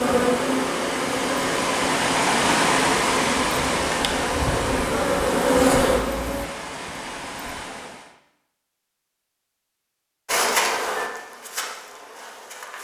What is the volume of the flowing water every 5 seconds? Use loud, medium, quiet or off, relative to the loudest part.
loud, medium, off.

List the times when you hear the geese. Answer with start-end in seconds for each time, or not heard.
not heard.